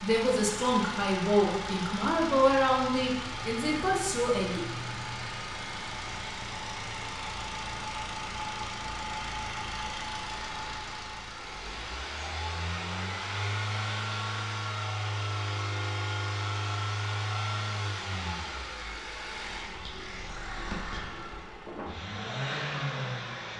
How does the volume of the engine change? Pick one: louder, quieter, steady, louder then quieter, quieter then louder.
steady.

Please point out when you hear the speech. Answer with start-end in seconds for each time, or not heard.
0.0-4.7.